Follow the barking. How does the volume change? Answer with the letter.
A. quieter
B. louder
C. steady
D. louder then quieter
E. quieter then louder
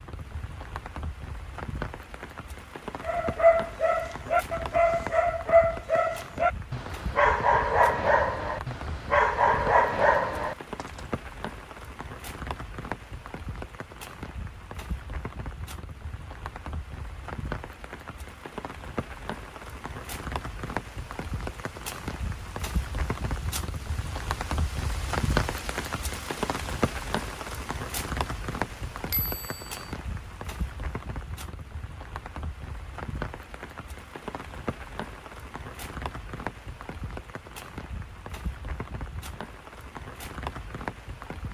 C.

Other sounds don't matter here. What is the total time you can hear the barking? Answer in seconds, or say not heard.
8 s.